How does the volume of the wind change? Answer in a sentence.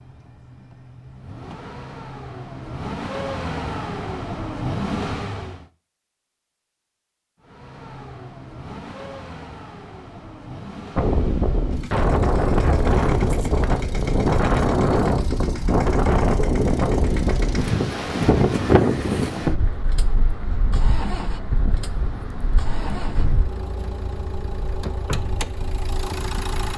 The loudness of the wind goes down.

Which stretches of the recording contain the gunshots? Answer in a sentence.
You can't hear the gunshots here.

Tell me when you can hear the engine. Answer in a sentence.
The engine can be heard from 0.0 to 5.7 s and from 7.4 to 26.7 s.